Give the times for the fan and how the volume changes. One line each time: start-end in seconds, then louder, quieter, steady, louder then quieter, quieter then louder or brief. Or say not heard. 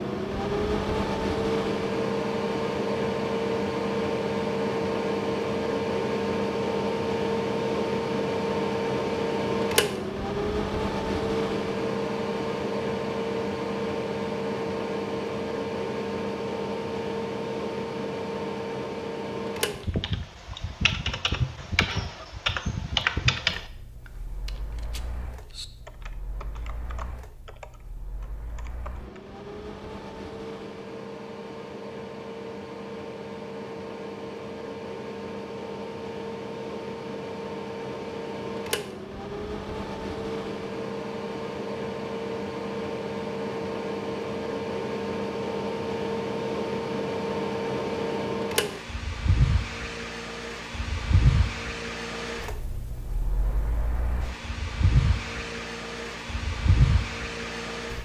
0.0-58.0 quieter then louder.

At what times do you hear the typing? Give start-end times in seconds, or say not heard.
19.9-29.2.